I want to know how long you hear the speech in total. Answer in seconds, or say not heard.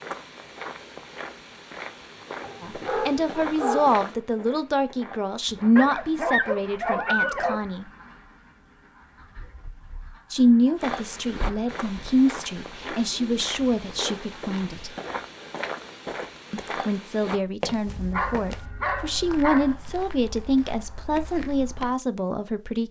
16 s.